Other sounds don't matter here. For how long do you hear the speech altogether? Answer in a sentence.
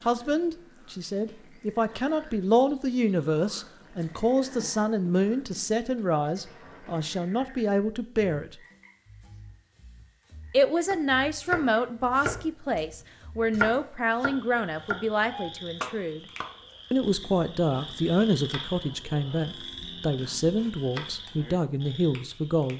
The speech can be heard for 20 seconds in total.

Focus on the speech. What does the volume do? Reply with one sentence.
The loudness of the speech stays about the same.